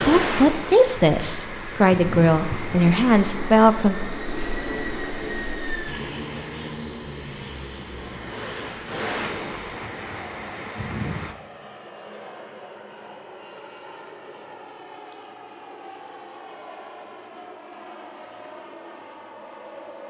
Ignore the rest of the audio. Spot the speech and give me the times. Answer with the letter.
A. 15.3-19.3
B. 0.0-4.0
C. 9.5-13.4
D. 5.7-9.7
B.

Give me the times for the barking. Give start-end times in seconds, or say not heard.
not heard.